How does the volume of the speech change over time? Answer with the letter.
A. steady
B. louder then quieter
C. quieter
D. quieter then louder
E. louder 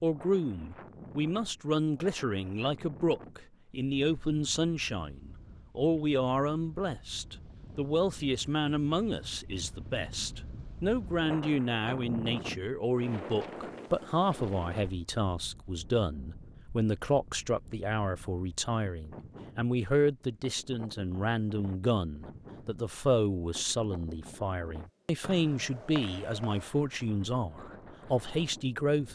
A.